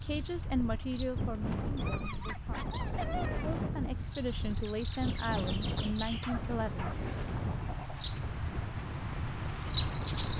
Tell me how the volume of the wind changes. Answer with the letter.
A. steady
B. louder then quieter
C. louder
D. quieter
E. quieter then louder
D.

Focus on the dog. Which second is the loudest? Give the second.
3 s.